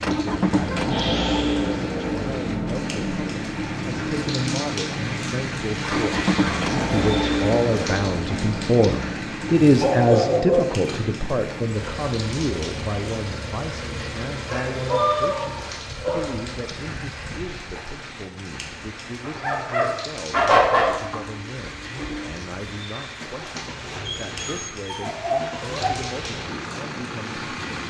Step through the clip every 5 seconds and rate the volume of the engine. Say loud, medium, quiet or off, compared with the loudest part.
loud, loud, medium, quiet, quiet, medium.